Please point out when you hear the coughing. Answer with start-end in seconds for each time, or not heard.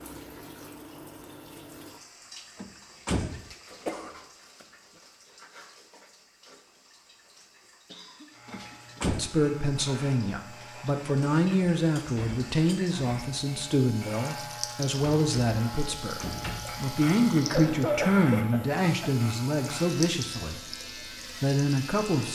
3.9-4.7, 7.9-9.2, 17.4-19.1.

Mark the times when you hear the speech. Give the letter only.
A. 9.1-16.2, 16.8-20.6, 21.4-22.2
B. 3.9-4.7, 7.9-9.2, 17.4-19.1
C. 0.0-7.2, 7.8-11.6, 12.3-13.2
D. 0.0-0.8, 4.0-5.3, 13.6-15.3
A.